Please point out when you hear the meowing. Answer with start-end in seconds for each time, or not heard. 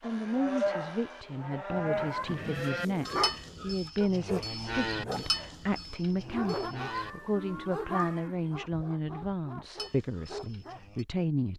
2.0-3.5, 6.8-8.2.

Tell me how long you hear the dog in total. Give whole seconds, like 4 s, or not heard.
8 s.